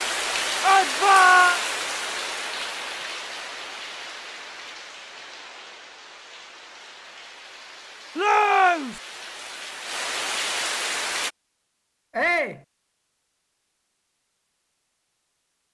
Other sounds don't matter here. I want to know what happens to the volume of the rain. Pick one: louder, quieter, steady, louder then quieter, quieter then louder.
quieter then louder.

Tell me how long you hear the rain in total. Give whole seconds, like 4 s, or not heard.
11 s.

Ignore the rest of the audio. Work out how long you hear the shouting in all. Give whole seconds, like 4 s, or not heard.
2 s.